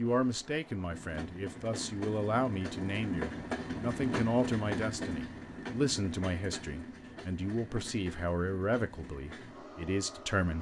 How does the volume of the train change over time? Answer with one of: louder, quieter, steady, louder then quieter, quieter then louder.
louder then quieter.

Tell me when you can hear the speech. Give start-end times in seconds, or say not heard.
0.0-10.5.